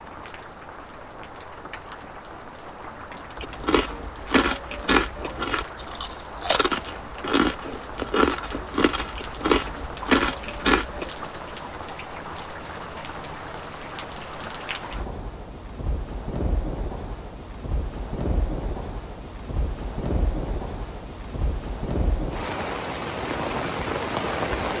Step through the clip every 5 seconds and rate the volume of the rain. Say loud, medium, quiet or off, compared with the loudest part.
medium, medium, medium, medium, loud.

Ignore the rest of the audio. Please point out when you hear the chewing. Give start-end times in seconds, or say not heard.
3.4-11.1.